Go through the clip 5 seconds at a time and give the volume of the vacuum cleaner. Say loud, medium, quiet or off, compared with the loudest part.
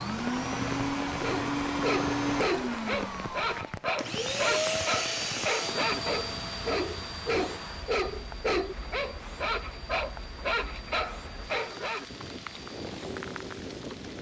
loud, medium, quiet.